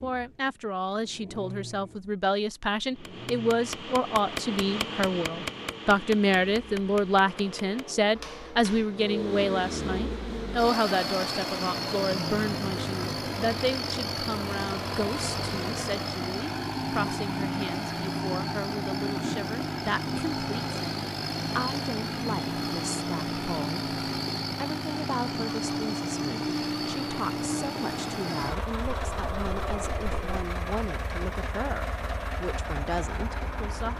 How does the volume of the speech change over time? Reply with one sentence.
The loudness of the speech goes down.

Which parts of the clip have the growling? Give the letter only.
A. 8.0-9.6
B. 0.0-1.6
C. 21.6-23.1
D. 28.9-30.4
D.